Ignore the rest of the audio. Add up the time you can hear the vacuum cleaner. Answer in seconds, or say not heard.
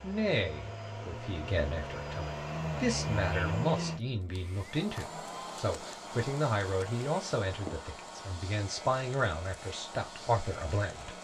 11 s.